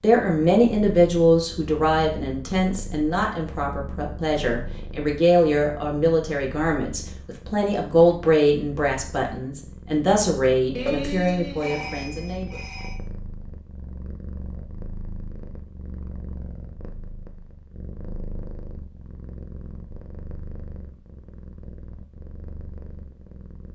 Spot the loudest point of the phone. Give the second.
11 s.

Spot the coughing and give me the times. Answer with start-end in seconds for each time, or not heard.
not heard.